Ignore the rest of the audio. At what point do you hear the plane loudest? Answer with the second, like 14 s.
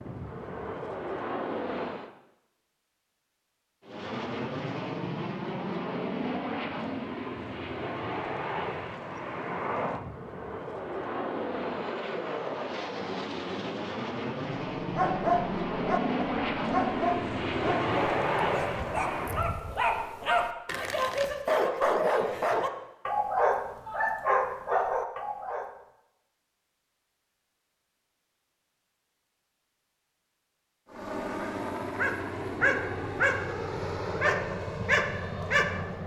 18 s.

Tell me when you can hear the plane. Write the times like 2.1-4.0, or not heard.
0.0-2.1, 3.8-19.5, 30.9-36.0.